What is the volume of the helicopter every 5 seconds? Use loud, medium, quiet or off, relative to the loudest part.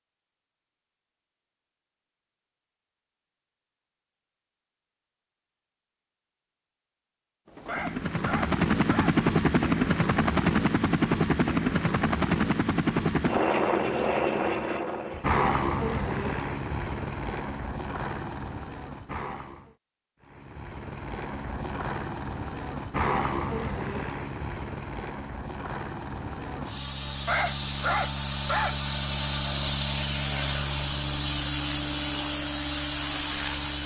off, loud, loud, medium, medium, loud, loud.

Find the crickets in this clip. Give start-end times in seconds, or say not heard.
not heard.